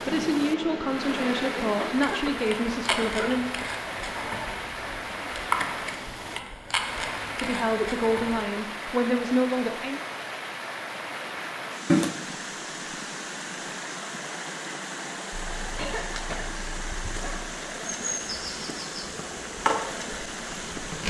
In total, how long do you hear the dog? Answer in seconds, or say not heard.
not heard.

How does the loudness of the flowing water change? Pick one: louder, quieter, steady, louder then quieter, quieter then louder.
steady.